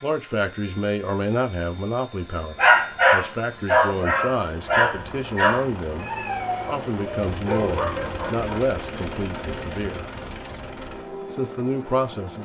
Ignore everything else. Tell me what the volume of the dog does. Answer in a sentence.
The loudness of the dog goes down.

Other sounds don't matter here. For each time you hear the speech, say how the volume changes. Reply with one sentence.
You can hear the speech from 0.0 to 12.3 s, at a steady volume.